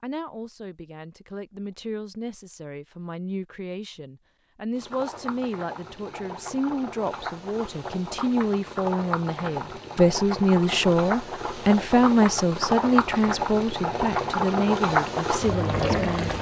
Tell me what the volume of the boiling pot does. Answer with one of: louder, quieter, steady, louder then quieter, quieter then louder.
louder.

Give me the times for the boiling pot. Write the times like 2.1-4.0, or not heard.
4.8-16.3.